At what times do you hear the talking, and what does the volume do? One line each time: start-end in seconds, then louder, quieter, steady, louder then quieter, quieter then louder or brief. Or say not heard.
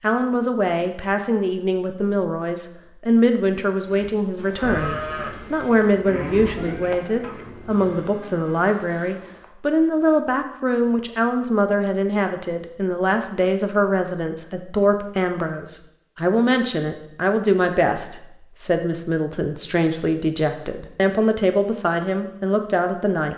0.0-23.3 steady.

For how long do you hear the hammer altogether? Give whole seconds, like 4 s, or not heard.
not heard.